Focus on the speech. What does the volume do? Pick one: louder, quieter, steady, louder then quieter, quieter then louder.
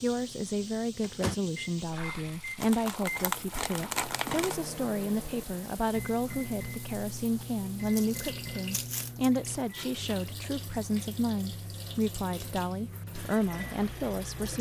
steady.